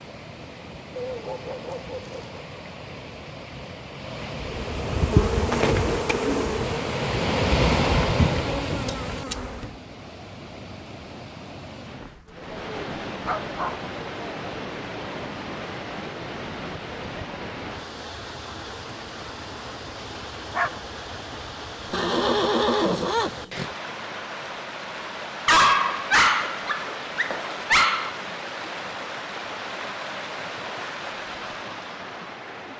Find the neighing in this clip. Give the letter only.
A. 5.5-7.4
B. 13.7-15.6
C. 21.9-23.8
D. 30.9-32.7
C.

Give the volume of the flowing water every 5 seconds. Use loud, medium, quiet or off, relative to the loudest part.
medium, loud, medium, medium, medium, medium, medium.